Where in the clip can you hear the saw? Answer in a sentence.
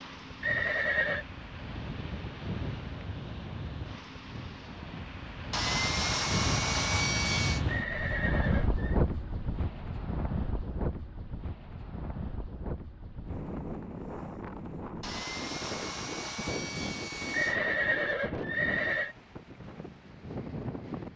You can hear the saw from 5.5 to 7.7 s and from 15.0 to 17.6 s.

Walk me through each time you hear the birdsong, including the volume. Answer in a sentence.
You can't hear the birdsong here.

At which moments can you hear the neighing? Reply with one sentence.
The neighing can be heard from 0.4 to 1.2 s, from 7.7 to 9.0 s and from 17.3 to 19.1 s.